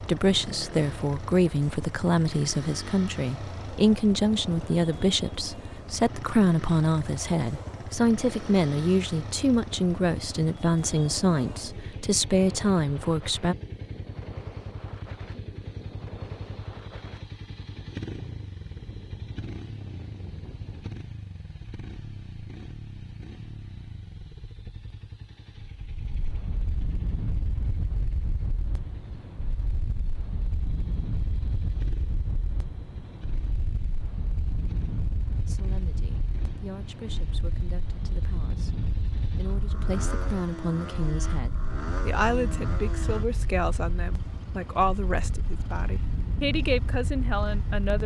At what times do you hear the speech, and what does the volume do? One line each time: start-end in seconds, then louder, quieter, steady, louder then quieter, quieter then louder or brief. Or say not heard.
0.0-13.6 steady
35.5-48.0 louder.